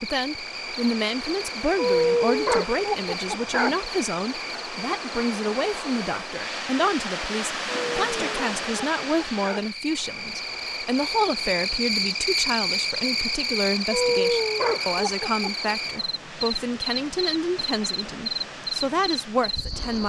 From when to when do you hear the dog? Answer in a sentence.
The dog can be heard from 1.8 to 3.8 s, from 7.7 to 9.7 s and from 13.9 to 15.7 s.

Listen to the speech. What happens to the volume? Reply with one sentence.
The loudness of the speech stays about the same.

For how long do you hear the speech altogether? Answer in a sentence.
You can hear the speech for 20 seconds altogether.